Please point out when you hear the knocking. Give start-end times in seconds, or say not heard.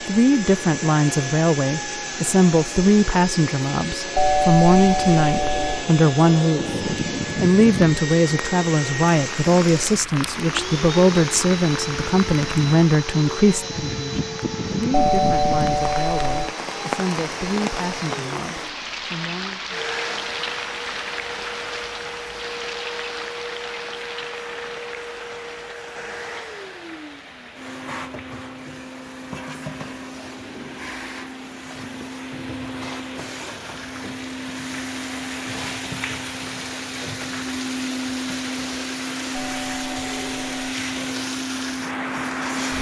not heard.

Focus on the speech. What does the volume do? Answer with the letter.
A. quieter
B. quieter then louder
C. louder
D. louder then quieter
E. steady
A.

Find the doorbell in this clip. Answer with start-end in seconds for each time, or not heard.
4.2-5.8, 14.9-16.5, 39.3-40.5.